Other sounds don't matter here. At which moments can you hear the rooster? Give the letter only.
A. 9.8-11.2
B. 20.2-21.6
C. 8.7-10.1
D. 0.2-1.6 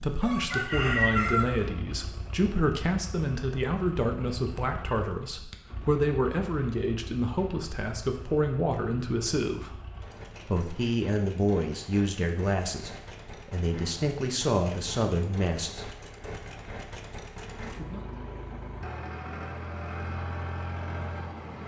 D.